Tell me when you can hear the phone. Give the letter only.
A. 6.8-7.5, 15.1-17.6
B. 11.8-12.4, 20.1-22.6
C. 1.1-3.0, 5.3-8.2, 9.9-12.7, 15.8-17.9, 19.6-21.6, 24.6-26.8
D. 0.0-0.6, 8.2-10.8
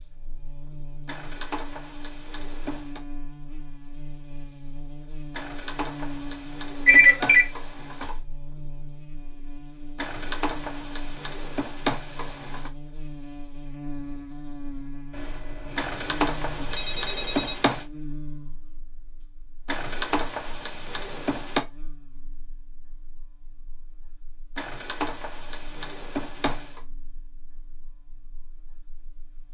A.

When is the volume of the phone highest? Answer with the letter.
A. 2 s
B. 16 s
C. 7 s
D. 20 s
C.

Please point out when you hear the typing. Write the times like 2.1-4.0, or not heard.
1.1-3.0, 5.3-8.2, 9.9-12.7, 15.8-17.9, 19.6-21.6, 24.6-26.8.